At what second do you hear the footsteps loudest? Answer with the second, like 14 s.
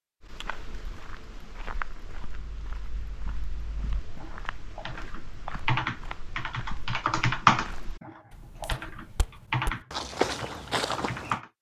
10 s.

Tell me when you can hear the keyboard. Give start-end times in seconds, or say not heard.
2.4-11.5.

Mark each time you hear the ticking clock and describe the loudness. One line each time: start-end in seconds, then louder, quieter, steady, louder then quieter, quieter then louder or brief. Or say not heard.
not heard.